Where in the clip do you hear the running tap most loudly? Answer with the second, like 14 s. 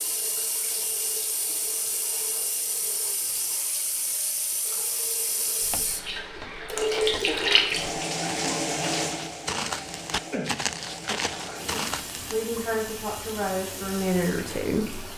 7 s.